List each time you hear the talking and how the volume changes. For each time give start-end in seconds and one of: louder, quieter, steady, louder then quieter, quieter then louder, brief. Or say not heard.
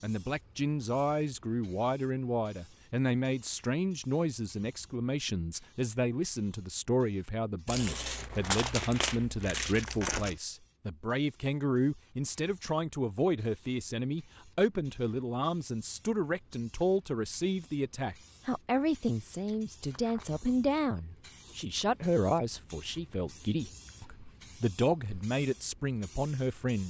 0.0-26.8 steady.